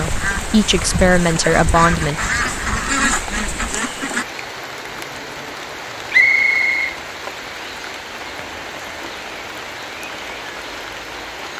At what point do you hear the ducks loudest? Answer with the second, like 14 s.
3 s.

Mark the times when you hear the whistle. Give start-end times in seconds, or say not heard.
6.1-7.0.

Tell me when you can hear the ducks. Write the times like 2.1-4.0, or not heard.
0.0-4.2.